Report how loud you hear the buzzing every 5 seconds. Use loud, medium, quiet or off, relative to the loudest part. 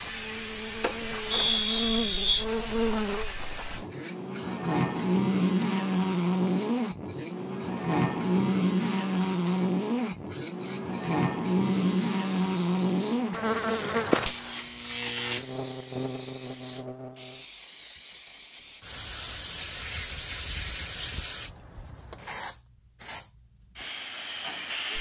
medium, loud, loud, medium, off.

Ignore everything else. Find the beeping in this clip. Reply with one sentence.
The beeping can be heard from 0.8 to 2.5 s.